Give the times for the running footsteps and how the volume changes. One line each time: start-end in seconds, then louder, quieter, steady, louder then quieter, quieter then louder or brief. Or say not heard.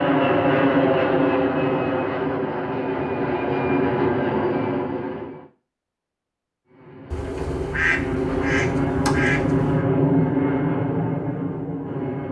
not heard.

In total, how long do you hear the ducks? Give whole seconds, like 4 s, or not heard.
3 s.